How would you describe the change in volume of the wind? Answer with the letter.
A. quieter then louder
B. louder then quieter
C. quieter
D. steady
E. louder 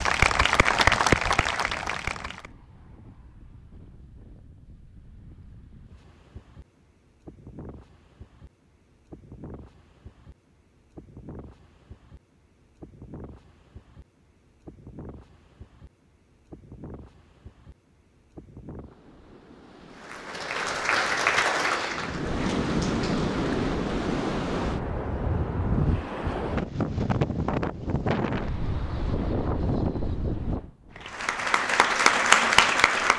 E.